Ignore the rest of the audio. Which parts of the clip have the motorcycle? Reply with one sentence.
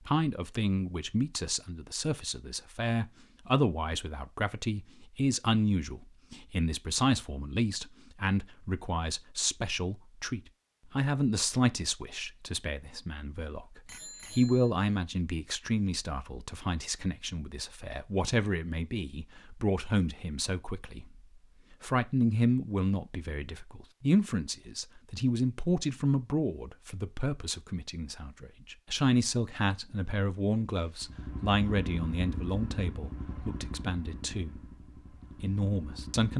You can hear the motorcycle from 30.9 to 36.3 s.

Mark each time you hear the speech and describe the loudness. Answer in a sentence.
The speech can be heard from 0.1 to 34.6 s, at a steady volume; and briefly from 35.4 to 36.3 s.